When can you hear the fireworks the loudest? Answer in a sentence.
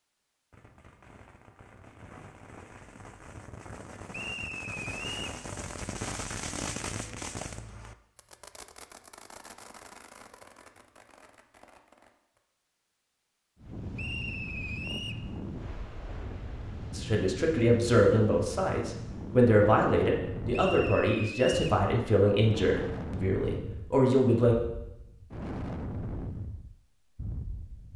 The volume of the fireworks peaks at 7 seconds.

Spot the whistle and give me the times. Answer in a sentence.
You can hear the whistle from 4.1 to 5.4 s, from 13.9 to 15.2 s and from 20.5 to 21.8 s.